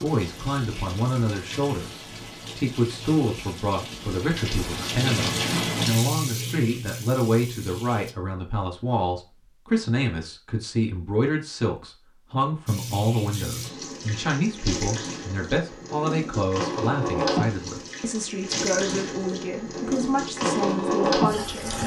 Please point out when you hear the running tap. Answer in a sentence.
The running tap can be heard from 0.0 to 8.2 s and from 12.7 to 21.8 s.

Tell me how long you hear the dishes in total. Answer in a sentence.
You can't hear the dishes here.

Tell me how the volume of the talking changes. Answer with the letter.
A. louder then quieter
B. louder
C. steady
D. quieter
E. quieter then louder
C.